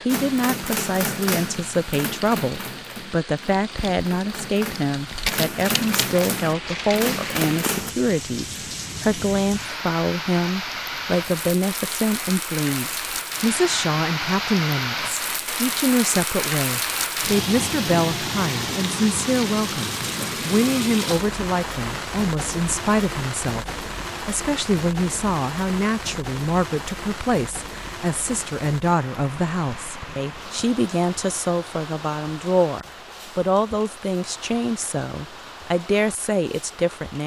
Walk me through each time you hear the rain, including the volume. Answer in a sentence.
The rain can be heard from 0.0 to 37.2 s, getting louder then quieter.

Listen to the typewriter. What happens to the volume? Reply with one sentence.
The loudness of the typewriter goes down, then up.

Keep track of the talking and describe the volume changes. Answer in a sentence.
The volume of the talking stays about the same.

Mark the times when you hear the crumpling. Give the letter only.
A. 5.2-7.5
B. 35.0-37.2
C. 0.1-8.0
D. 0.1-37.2
A.